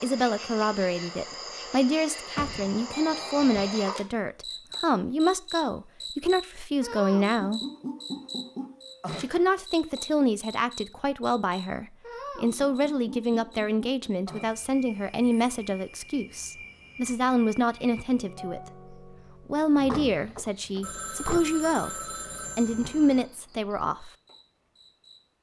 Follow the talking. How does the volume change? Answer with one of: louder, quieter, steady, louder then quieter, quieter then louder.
steady.